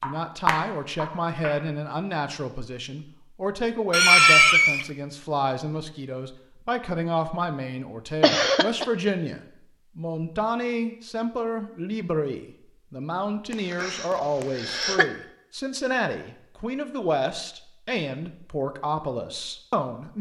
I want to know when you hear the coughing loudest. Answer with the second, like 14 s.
4 s.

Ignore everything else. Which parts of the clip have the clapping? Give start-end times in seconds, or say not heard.
0.0-1.6.